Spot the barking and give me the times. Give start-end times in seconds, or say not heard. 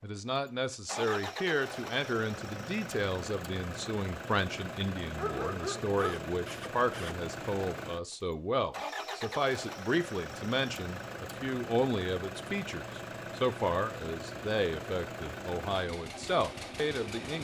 5.2-7.2.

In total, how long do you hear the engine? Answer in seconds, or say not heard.
17 s.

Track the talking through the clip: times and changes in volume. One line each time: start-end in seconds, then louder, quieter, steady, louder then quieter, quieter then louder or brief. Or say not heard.
0.0-17.3 steady.